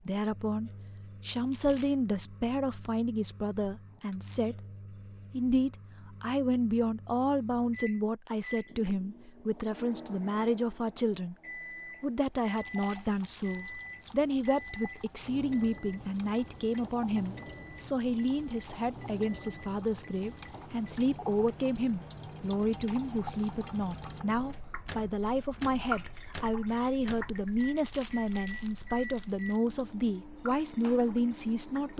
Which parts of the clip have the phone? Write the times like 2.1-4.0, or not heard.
not heard.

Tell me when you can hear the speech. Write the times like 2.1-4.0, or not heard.
0.1-4.6, 5.3-11.3, 12.0-31.9.